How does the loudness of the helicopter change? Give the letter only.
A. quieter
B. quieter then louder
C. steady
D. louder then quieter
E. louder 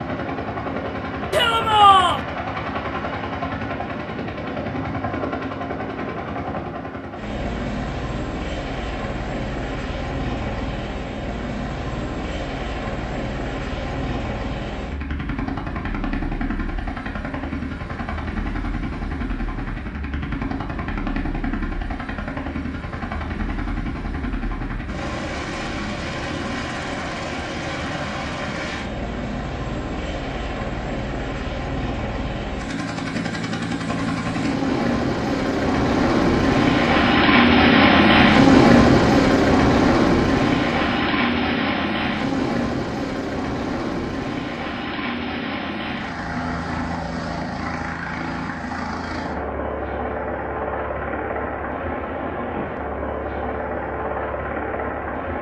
D.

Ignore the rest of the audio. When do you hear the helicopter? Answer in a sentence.
The helicopter can be heard from 0.0 to 55.3 s.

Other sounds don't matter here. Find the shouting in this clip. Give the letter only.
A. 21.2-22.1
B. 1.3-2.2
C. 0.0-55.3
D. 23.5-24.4
B.